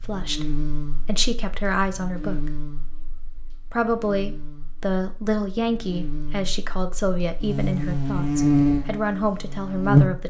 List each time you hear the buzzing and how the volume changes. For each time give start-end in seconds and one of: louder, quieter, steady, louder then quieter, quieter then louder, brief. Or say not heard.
0.0-10.2 quieter then louder.